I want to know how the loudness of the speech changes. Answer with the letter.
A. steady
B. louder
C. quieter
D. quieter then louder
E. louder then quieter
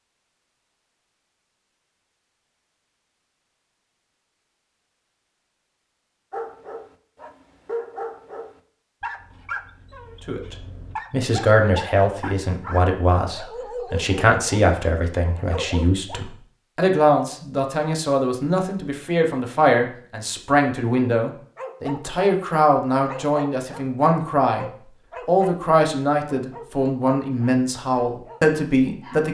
A.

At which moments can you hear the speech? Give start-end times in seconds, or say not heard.
10.2-24.6, 25.2-29.2.